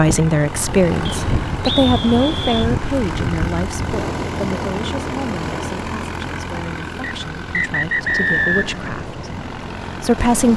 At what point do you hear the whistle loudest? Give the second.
8 s.